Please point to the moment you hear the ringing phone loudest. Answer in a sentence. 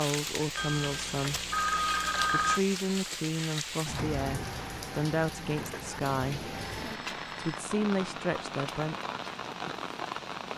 The volume of the ringing phone peaks at 2 seconds.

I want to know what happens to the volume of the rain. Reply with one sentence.
The loudness of the rain stays about the same.